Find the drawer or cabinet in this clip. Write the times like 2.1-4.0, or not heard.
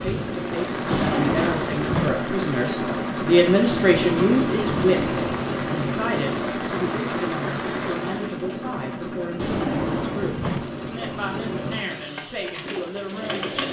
0.9-2.2, 4.7-5.4, 9.3-10.7.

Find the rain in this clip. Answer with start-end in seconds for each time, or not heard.
0.0-8.3.